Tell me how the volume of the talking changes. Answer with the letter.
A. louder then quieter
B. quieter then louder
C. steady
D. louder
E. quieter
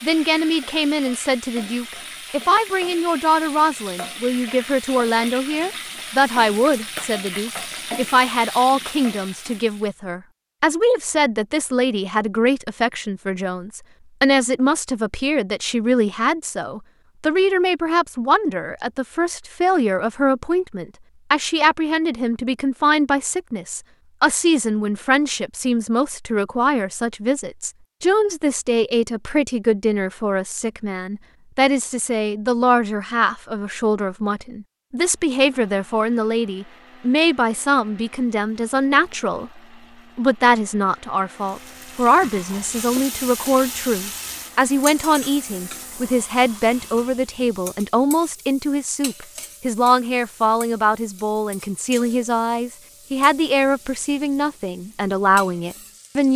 C.